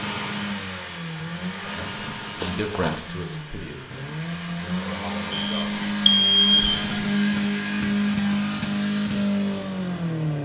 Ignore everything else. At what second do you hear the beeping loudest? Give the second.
6 s.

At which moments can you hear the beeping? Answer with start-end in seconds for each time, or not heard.
2.4-3.0, 5.3-6.8.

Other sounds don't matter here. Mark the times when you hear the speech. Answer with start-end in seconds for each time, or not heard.
1.6-6.5.